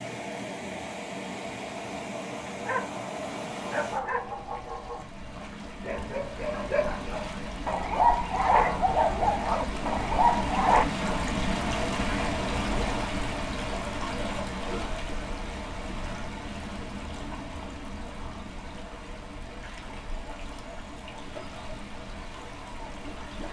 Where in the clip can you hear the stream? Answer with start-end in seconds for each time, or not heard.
0.0-23.4.